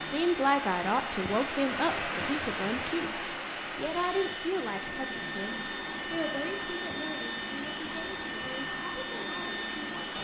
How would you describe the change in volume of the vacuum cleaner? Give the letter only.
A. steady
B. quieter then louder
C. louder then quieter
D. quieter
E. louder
E.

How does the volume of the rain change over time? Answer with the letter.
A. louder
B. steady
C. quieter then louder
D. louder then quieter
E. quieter
E.